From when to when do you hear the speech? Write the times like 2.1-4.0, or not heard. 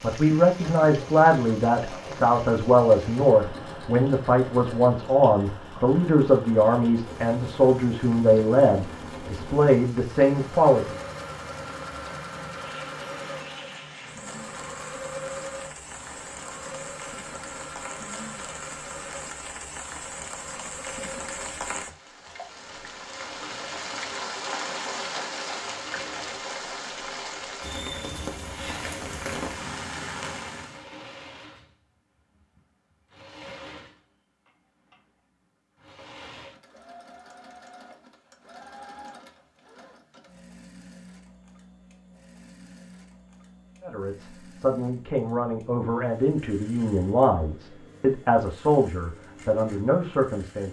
0.0-10.9, 43.8-50.6.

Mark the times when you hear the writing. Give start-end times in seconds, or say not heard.
not heard.